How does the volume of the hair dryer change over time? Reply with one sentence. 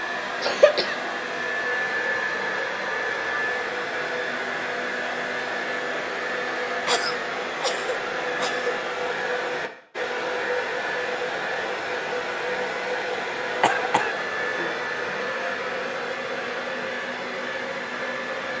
The volume of the hair dryer stays about the same.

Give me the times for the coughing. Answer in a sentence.
You can hear the coughing from 0.4 to 0.9 s, from 6.8 to 8.8 s and from 13.6 to 14.7 s.